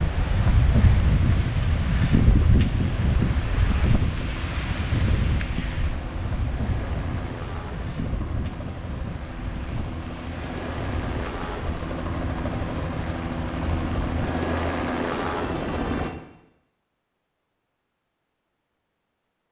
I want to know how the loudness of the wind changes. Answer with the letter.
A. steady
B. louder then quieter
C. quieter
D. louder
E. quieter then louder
C.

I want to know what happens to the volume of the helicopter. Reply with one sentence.
The loudness of the helicopter goes up.